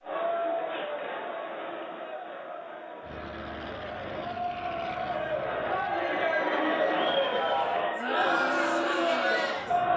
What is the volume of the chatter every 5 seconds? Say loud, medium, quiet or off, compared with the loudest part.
medium, loud.